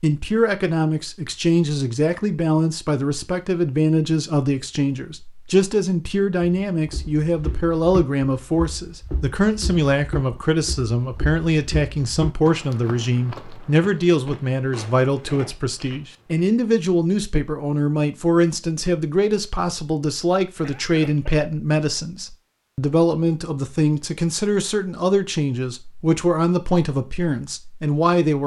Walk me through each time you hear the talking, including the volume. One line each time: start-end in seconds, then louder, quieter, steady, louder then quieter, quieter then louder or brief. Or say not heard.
0.0-28.4 steady.